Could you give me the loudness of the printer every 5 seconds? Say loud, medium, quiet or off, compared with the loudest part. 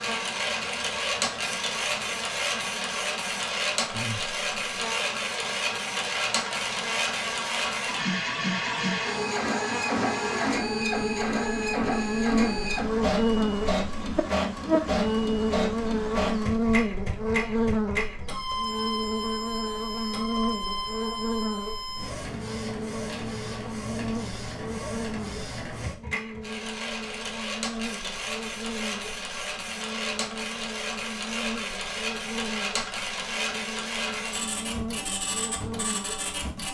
loud, loud, loud, loud, medium, medium, loud, medium.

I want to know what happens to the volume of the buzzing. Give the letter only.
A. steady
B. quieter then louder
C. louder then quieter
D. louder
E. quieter
C.